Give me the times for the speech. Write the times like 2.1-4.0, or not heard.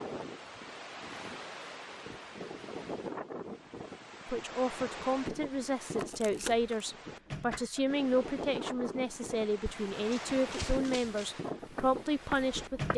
4.2-12.9.